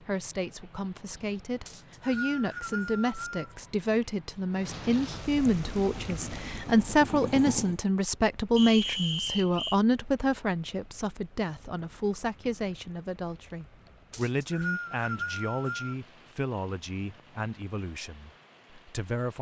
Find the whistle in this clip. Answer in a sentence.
The whistle can be heard from 1.6 to 3.5 s, from 8.6 to 9.8 s and from 14.1 to 15.9 s.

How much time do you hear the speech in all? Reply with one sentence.
You can hear the speech for 19 seconds altogether.